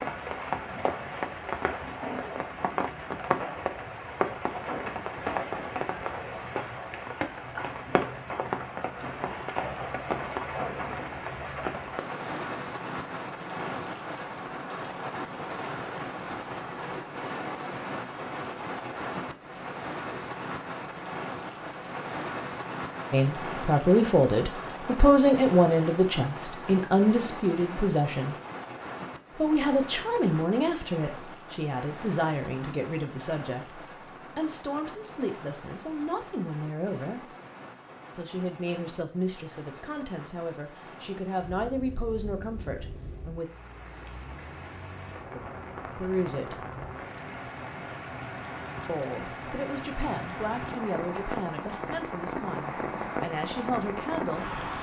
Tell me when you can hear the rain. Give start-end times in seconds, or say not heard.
0.0-54.7.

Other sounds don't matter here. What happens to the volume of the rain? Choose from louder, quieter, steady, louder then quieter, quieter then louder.
quieter then louder.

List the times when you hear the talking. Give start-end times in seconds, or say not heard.
23.1-28.4, 29.4-37.2, 38.1-43.5, 46.0-46.5, 48.9-54.5.